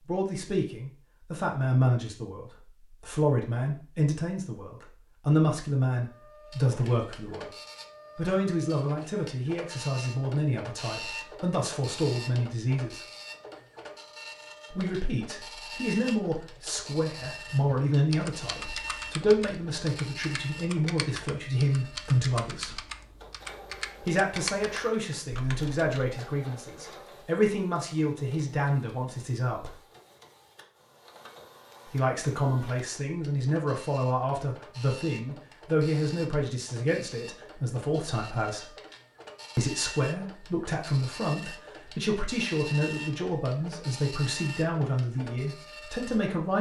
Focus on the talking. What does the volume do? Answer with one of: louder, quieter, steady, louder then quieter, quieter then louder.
steady.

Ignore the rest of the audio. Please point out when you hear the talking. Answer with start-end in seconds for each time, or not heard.
0.1-7.5, 8.2-13.1, 14.7-22.8, 24.0-29.8, 31.9-38.7, 39.5-46.5.